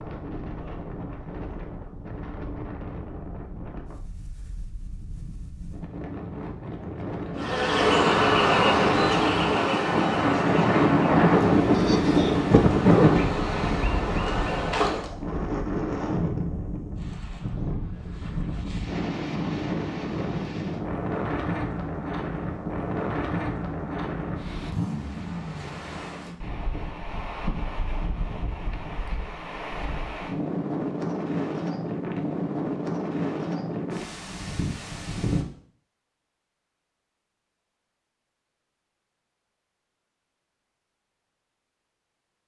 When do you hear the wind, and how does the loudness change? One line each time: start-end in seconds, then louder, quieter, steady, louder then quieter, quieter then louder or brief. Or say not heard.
0.0-35.5 louder then quieter.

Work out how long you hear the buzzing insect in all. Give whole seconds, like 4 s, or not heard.
8 s.